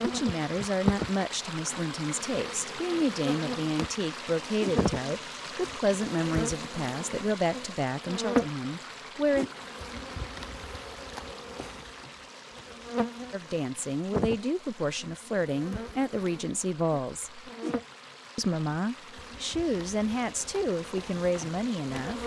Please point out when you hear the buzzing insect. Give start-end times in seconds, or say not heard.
0.0-22.2.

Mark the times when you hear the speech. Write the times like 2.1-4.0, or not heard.
0.1-9.5, 13.3-17.4, 18.4-22.2.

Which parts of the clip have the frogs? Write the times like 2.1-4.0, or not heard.
not heard.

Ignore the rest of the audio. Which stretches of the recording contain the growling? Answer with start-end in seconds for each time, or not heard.
not heard.